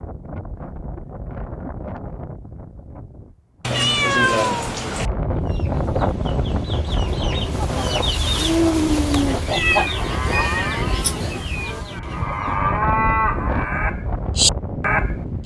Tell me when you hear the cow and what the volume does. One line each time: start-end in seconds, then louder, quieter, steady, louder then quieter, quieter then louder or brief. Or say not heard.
7.7-15.4 quieter then louder.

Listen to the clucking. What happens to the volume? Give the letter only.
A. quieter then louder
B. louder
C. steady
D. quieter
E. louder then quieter
E.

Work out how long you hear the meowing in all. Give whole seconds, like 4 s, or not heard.
4 s.